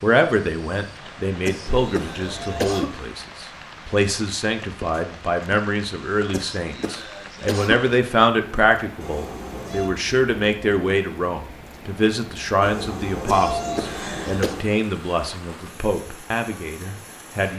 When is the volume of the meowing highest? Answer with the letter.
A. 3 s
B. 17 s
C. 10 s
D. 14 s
D.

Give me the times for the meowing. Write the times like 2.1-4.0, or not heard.
1.6-3.1, 9.0-9.9, 12.6-14.7.